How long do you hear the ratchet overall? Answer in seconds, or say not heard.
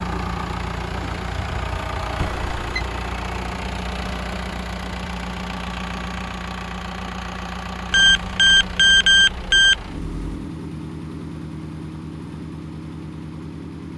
not heard.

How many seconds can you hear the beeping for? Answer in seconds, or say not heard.
3 s.